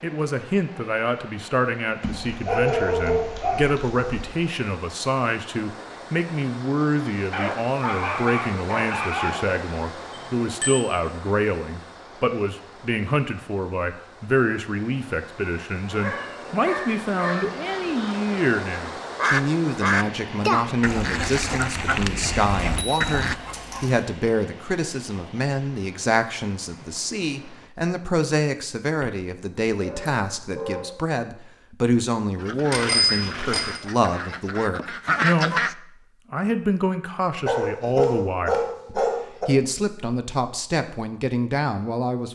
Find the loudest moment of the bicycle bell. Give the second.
33 s.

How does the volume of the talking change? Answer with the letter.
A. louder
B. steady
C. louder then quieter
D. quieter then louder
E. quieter
B.